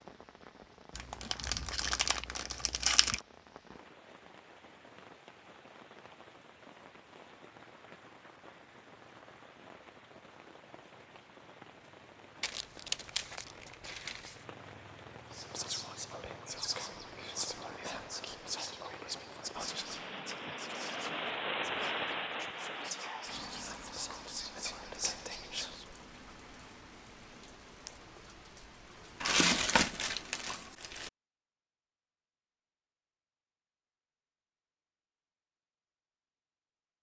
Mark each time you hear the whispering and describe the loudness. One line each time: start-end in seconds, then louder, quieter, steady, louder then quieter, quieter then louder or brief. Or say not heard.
15.3-25.9 quieter then louder.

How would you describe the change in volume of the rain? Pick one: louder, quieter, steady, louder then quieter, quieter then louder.
louder then quieter.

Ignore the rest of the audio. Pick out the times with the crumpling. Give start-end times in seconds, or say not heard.
0.9-3.2, 12.4-14.4, 29.2-31.1.